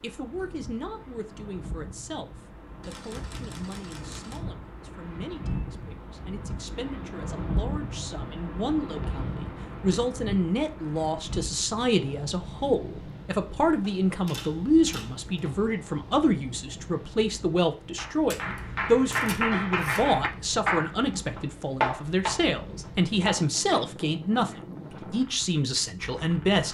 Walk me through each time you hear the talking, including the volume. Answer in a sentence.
You can hear the talking from 0.0 to 26.6 s, getting louder.